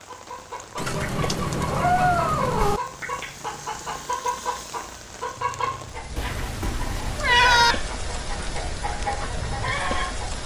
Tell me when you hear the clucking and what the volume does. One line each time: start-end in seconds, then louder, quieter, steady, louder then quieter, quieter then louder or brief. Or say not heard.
0.0-10.4 steady.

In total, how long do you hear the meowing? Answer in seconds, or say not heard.
4 s.